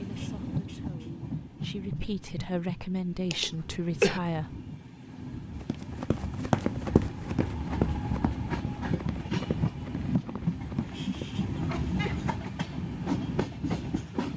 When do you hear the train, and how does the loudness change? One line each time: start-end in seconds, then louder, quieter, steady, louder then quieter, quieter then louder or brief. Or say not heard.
0.0-14.3 quieter then louder.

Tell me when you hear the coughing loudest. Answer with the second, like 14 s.
4 s.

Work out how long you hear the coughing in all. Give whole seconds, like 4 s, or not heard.
2 s.